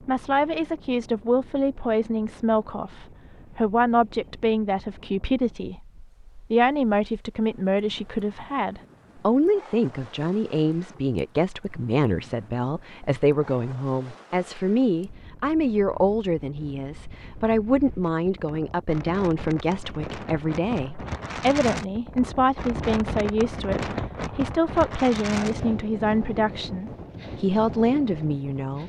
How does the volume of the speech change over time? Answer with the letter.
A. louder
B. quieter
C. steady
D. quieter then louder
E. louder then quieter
C.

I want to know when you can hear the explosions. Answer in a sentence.
The explosions can't be heard in this clip.